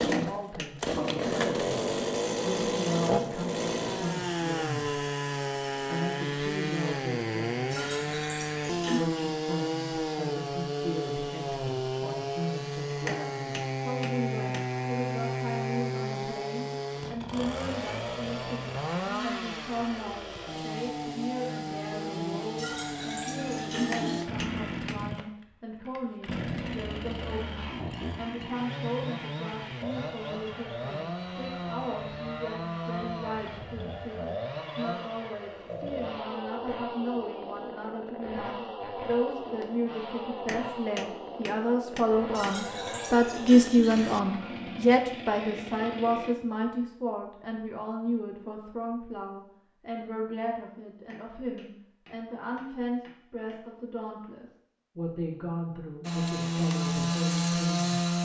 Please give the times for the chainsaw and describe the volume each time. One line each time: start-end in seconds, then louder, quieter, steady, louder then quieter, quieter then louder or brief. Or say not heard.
0.0-46.4 quieter
56.0-58.2 brief.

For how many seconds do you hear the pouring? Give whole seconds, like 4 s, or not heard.
5 s.